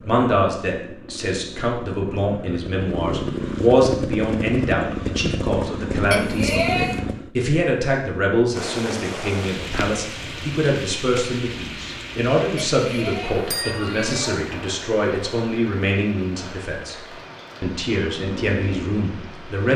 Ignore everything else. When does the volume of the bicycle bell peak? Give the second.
7 s.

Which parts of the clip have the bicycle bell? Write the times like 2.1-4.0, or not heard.
6.1-7.0, 12.6-14.3.